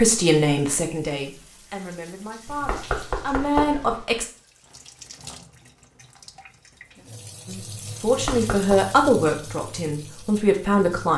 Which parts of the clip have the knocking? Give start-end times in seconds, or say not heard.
2.5-4.0, 8.1-8.8.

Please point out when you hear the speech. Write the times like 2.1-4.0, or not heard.
0.0-4.2, 7.5-11.1.